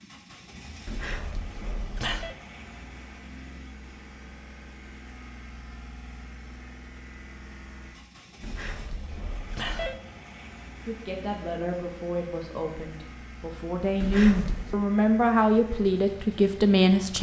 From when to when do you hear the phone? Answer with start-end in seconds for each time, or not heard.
0.8-2.4, 8.4-10.0, 14.0-14.8.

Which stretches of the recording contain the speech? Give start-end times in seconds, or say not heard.
10.8-17.1.